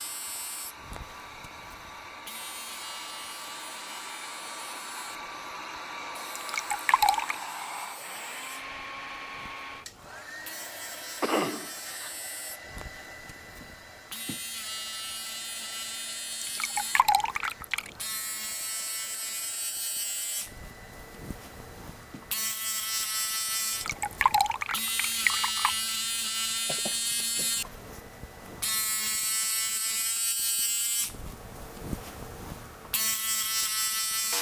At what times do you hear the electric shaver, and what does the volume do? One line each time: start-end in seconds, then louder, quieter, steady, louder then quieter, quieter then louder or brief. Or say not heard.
0.0-34.3 louder.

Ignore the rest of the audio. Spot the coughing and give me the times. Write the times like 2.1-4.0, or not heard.
11.2-12.2, 26.6-27.5.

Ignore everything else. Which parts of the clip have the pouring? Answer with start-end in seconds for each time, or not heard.
6.3-7.3, 16.4-17.9, 23.6-25.8.